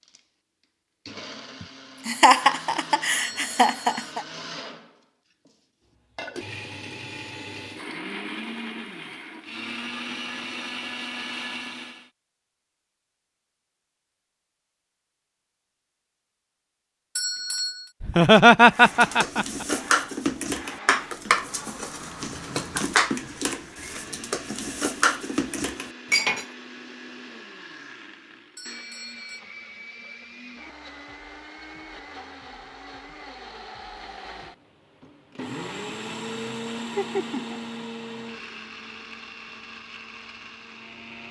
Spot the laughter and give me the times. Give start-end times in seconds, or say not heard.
2.0-4.2, 18.0-19.6, 37.0-37.6.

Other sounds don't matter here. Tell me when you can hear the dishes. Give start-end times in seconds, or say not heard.
18.8-26.4.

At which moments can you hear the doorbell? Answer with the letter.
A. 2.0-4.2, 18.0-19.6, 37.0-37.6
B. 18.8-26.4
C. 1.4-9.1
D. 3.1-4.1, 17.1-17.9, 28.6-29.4
D.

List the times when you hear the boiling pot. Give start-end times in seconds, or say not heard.
not heard.